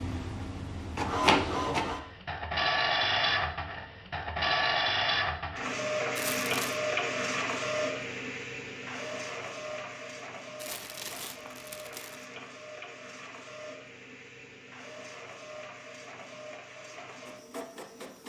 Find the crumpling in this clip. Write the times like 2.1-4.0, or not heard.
6.2-6.8, 10.6-12.2.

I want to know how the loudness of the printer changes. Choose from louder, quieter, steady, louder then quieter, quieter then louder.
quieter.